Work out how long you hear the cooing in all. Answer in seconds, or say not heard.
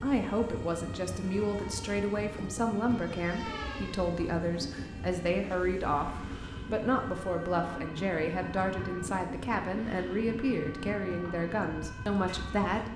not heard.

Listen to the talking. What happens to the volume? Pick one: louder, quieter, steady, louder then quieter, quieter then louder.
steady.